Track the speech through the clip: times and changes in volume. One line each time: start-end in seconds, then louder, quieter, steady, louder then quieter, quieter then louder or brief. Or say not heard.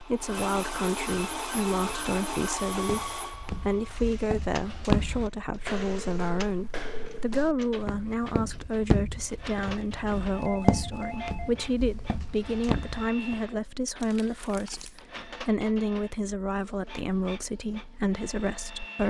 0.0-19.0 steady.